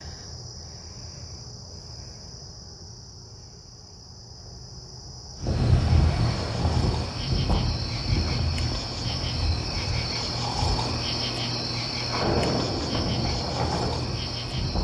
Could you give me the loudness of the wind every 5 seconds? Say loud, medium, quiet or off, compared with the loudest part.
off, loud, loud.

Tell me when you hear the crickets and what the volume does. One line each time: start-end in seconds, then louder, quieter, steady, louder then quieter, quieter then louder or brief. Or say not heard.
0.0-14.7 louder.